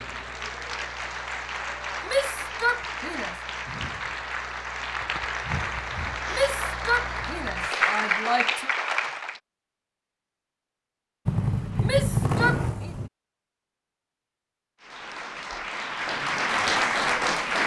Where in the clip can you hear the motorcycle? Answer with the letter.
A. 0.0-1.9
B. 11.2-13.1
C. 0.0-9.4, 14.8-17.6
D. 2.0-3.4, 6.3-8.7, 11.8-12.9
B.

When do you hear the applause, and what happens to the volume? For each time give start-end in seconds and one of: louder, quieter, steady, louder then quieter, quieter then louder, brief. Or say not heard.
0.0-9.4 louder
14.8-17.6 brief.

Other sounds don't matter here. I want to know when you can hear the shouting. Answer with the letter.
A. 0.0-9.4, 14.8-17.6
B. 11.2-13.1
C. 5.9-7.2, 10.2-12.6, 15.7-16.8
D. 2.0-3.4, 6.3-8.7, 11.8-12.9
D.